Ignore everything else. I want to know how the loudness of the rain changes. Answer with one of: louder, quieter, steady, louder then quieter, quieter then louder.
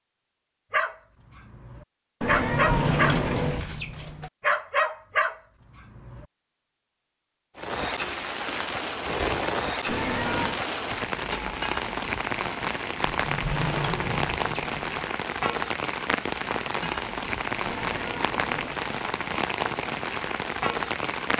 steady.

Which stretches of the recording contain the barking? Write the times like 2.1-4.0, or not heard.
0.7-6.2.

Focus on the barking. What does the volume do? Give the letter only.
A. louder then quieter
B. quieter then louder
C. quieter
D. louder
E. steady
D.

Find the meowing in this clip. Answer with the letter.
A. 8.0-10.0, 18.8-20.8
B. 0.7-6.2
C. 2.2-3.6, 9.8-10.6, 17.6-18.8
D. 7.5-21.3
C.